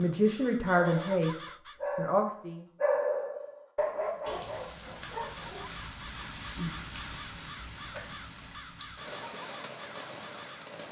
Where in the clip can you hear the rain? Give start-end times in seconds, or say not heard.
4.2-10.8.